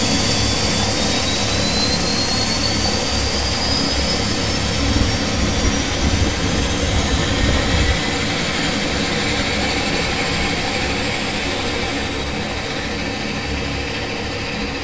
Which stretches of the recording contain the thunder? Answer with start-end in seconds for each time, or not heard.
4.8-8.1.